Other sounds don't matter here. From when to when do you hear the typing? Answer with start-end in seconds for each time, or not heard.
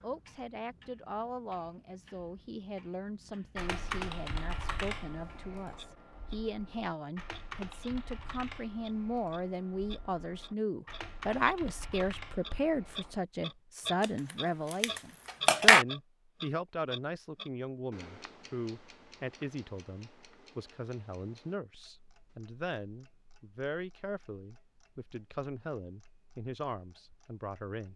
3.5-13.2.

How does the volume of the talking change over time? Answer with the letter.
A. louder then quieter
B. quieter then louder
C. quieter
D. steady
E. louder
A.